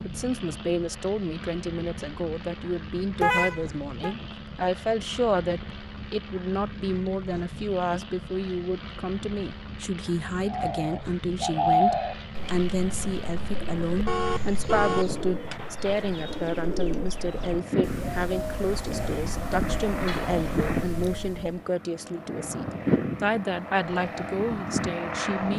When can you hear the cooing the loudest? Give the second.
12 s.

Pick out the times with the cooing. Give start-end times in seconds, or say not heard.
10.4-21.6.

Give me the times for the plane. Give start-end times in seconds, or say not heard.
0.0-25.5.